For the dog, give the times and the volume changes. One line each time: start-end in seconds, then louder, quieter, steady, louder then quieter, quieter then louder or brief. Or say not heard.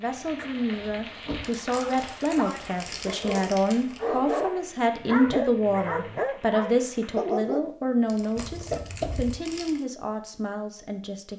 1.7-7.7 louder.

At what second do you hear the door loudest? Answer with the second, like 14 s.
9 s.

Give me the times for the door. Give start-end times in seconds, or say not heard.
0.1-1.4, 8.3-9.3.